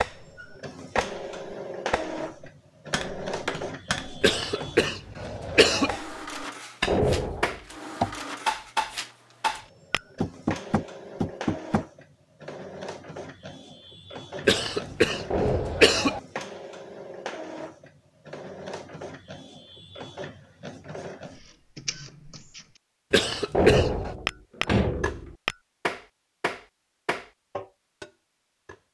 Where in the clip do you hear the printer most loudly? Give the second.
1 s.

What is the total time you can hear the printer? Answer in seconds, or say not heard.
23 s.